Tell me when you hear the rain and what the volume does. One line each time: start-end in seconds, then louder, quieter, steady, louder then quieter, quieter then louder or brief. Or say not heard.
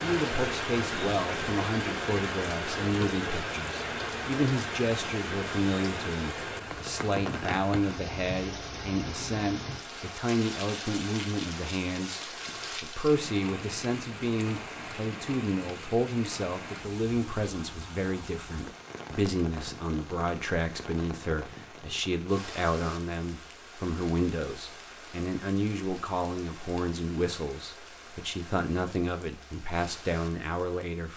0.0-31.1 quieter.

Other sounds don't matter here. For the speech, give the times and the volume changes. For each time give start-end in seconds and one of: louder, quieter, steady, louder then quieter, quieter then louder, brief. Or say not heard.
0.0-31.1 steady.